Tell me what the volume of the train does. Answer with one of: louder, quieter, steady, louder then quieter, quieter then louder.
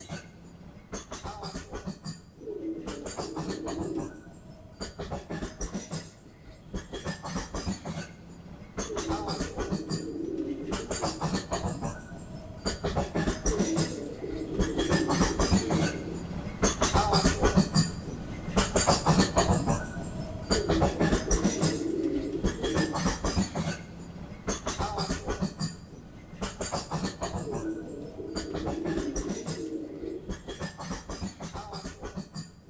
louder then quieter.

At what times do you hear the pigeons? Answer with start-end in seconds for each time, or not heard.
2.4-4.1, 8.8-11.2, 13.4-16.2, 20.4-22.9, 27.4-30.2.